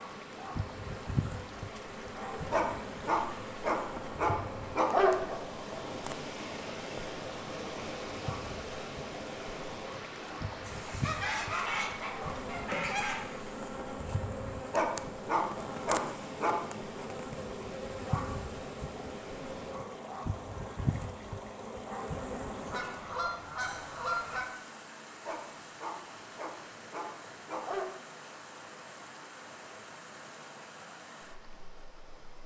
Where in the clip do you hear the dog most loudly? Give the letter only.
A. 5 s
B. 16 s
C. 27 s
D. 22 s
A.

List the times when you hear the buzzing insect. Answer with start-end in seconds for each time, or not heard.
0.0-23.2.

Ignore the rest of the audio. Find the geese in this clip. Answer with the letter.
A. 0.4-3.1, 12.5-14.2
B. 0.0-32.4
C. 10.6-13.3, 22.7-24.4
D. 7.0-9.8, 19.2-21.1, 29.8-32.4
C.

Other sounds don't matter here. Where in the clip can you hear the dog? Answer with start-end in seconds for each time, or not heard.
2.5-5.3, 14.7-16.6, 25.2-27.9.